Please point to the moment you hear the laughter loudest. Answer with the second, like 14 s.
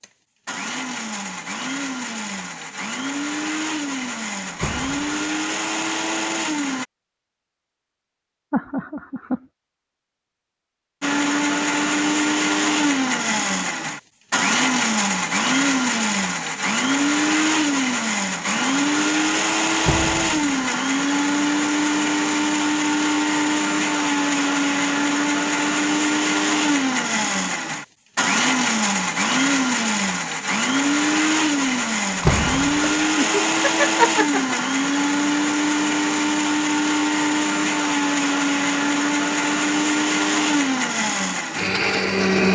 34 s.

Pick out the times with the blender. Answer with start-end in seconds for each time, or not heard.
0.0-6.8, 11.0-42.4.